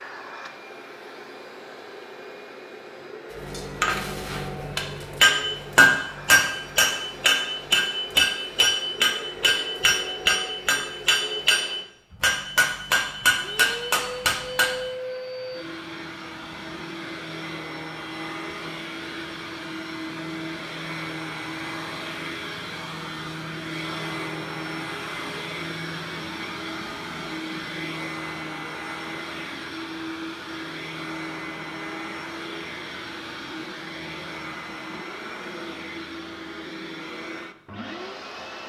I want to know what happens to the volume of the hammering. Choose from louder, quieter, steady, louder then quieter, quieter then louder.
steady.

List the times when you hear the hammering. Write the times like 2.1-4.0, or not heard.
3.5-14.8.